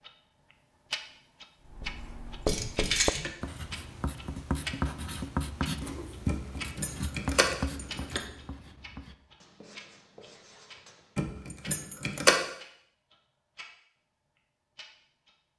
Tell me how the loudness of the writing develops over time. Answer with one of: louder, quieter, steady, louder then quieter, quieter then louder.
quieter.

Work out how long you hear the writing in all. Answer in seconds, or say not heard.
10 s.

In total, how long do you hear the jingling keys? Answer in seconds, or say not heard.
4 s.